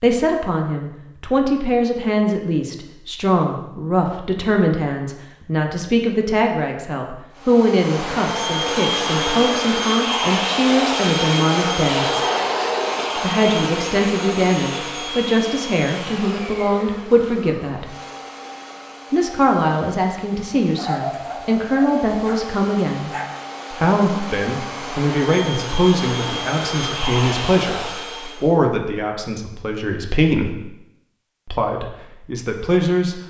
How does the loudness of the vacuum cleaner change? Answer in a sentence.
The volume of the vacuum cleaner goes down, then up.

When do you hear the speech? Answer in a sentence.
The speech can be heard from 0.0 to 12.2 s, from 13.2 to 17.9 s, from 19.1 to 23.1 s, from 23.7 to 30.6 s and from 31.4 to 33.2 s.